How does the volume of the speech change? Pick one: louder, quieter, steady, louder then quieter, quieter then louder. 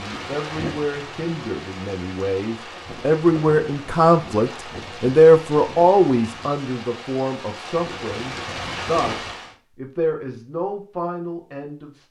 louder then quieter.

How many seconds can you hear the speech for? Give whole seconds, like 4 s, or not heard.
12 s.